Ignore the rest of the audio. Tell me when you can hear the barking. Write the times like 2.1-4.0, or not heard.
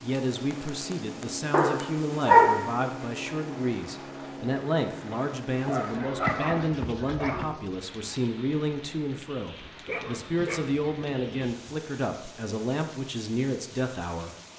1.5-2.8, 5.7-7.5, 9.8-11.5.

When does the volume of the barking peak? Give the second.
2 s.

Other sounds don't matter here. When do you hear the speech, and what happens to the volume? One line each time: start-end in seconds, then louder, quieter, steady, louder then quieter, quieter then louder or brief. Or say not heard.
0.0-14.3 steady.